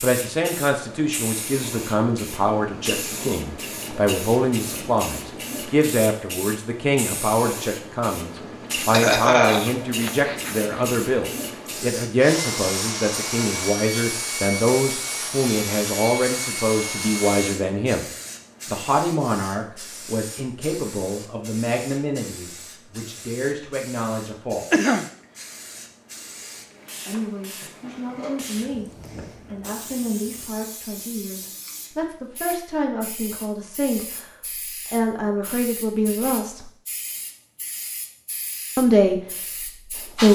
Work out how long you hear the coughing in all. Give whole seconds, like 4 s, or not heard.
3 s.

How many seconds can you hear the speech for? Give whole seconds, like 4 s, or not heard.
35 s.